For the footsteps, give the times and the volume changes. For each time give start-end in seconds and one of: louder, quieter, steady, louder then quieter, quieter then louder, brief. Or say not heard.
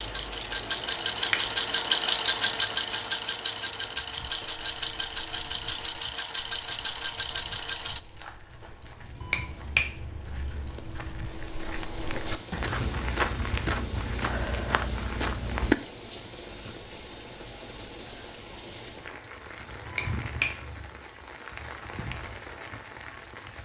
4.2-15.8 louder.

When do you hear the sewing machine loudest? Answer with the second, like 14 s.
2 s.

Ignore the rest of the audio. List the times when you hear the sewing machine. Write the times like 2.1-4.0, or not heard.
0.0-8.0.